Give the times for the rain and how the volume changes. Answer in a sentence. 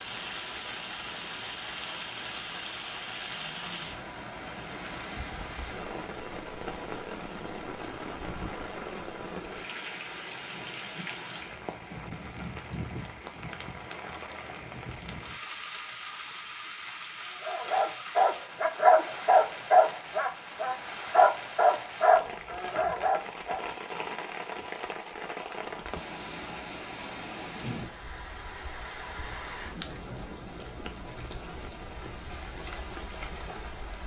You can hear the rain from 0.0 to 34.0 s, at a steady volume.